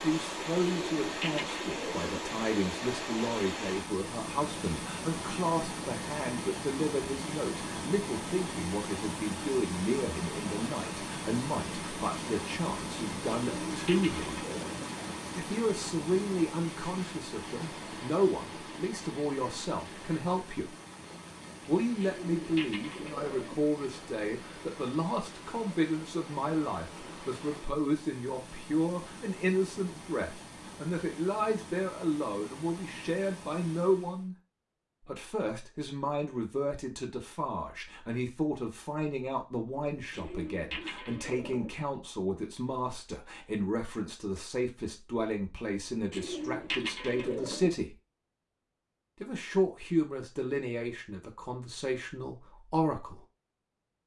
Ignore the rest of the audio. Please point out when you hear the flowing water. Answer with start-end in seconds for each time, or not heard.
0.0-34.3.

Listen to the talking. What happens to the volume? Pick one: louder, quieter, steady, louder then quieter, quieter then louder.
steady.